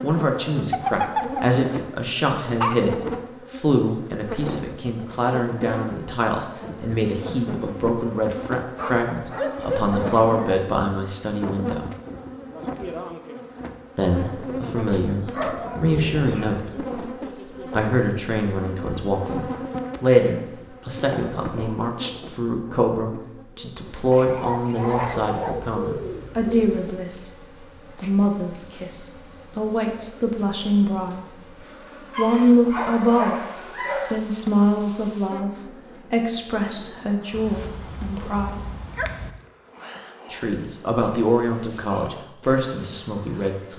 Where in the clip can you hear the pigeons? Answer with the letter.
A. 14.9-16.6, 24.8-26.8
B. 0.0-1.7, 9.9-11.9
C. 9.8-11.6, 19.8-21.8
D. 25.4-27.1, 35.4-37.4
A.